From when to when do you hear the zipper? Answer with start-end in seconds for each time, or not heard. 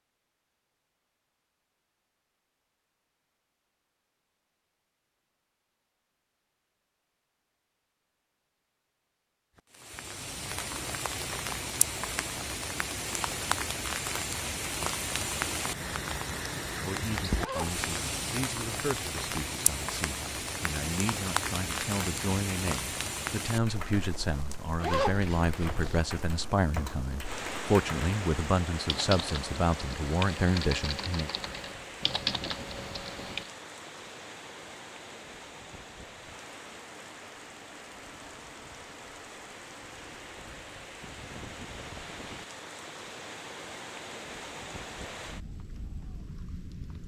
17.4-17.8, 24.8-26.0.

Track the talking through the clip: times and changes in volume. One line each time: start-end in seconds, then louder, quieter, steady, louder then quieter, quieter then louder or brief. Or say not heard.
16.8-31.3 louder.